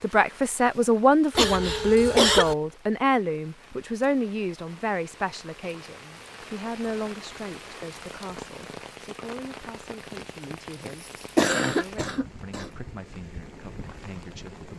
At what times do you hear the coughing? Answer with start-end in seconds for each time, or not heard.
1.4-2.5, 11.0-12.7.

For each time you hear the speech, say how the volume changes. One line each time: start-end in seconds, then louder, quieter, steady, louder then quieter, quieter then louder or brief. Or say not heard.
0.0-14.7 quieter.